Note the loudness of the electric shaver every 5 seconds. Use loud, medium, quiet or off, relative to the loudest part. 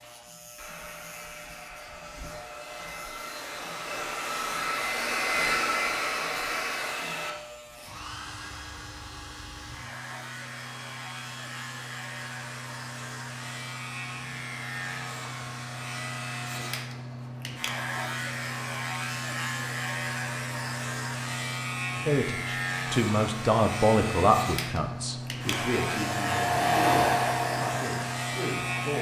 quiet, quiet, medium, loud, loud, loud.